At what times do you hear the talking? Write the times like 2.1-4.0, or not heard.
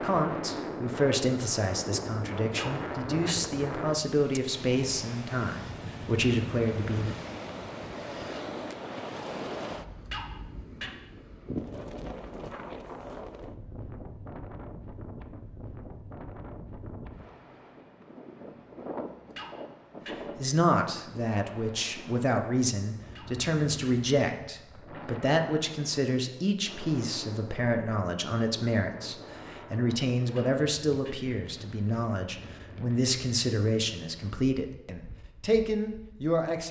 0.0-7.2, 20.4-36.6.